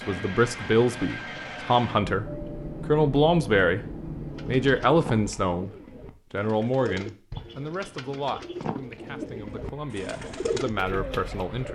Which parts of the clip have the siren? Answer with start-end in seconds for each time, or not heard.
not heard.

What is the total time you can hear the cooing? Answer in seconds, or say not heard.
7 s.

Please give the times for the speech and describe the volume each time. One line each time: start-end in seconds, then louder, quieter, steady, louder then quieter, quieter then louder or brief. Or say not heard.
0.1-2.2 brief
2.9-3.9 brief
4.5-11.7 quieter then louder.